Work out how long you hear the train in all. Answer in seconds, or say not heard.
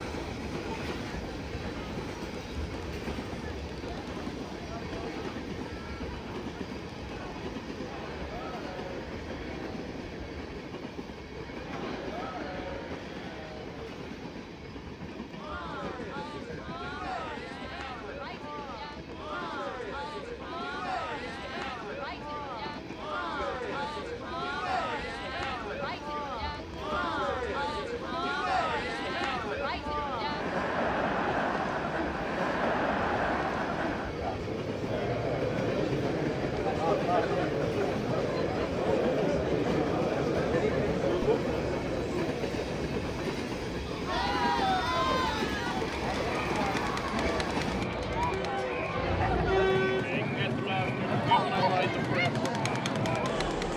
54 s.